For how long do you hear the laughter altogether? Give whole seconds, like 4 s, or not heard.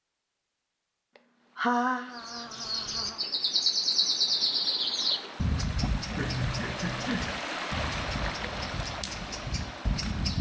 3 s.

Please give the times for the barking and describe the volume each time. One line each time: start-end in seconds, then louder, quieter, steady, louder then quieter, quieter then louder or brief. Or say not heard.
not heard.